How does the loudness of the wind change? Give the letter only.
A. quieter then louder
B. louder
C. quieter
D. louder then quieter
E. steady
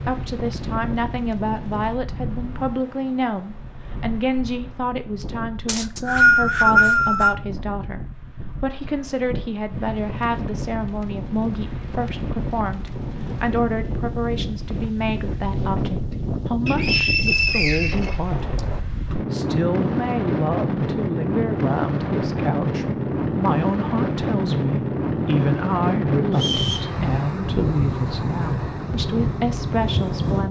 B.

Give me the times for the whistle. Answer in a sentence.
You can hear the whistle from 5.7 to 7.3 s, from 16.6 to 18.6 s and from 26.3 to 26.9 s.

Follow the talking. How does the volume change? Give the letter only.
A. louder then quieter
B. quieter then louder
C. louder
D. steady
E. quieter
D.